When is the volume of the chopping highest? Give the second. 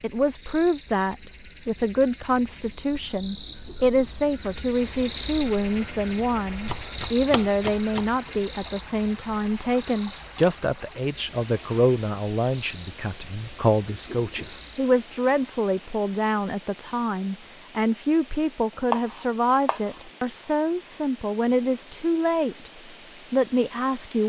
19 s.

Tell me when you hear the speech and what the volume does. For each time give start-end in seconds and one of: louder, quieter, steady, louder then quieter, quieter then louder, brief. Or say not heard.
0.0-22.7 steady
23.3-24.2 brief.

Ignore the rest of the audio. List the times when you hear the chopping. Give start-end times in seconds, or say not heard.
6.5-8.3, 18.9-20.1.